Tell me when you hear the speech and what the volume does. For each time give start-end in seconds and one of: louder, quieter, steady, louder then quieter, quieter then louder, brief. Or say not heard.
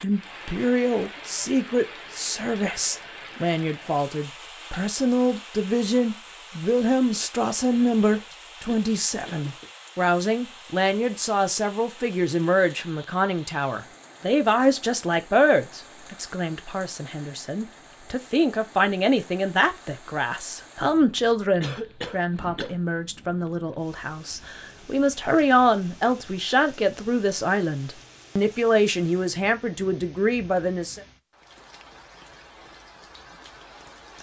0.0-31.1 steady.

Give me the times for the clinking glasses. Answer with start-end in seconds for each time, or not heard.
not heard.